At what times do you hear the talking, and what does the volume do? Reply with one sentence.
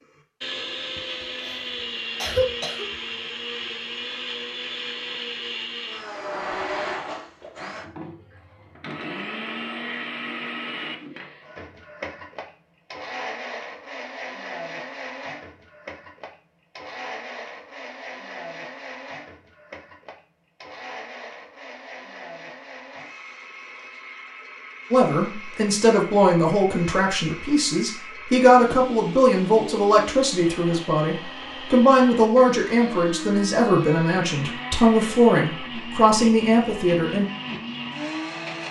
The talking can be heard from 24.9 to 37.2 s, at a steady volume.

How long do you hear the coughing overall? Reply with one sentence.
The coughing can be heard for 2 seconds in total.